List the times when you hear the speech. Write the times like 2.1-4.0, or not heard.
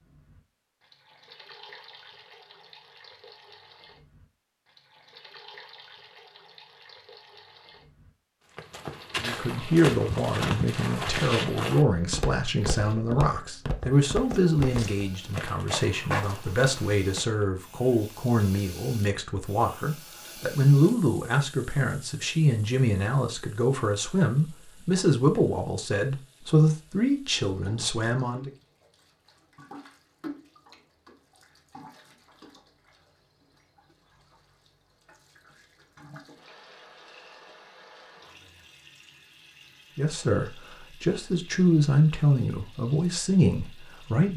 9.2-28.5, 40.0-44.3.